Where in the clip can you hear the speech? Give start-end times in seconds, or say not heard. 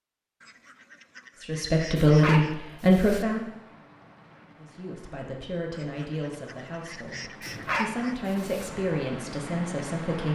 1.4-3.5, 4.6-10.3.